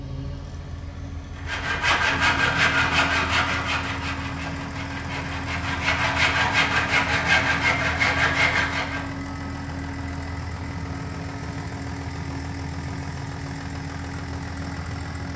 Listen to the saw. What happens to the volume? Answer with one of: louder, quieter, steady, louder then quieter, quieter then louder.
quieter then louder.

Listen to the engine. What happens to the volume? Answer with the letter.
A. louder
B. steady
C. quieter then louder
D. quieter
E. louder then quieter
B.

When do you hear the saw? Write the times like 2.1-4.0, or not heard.
1.4-9.1.